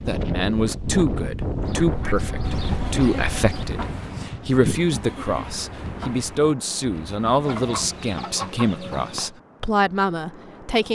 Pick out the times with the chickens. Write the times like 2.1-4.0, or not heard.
1.6-3.6, 7.4-9.3.